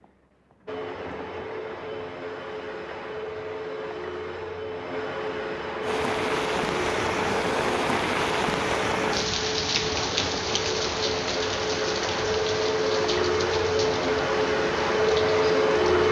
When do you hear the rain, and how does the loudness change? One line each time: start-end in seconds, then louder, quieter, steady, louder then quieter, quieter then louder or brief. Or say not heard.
5.8-16.0 quieter.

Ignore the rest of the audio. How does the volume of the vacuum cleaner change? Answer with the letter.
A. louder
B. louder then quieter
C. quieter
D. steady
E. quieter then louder
A.